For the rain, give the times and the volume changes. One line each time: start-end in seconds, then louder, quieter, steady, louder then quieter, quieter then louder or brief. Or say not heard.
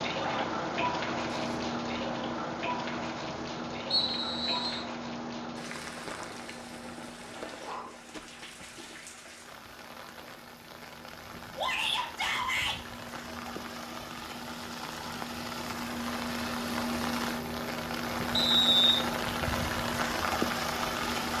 0.0-21.3 quieter then louder.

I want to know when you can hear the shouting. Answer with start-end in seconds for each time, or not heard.
11.6-12.8.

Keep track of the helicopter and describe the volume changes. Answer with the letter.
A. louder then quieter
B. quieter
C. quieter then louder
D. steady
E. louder
C.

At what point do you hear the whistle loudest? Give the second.
19 s.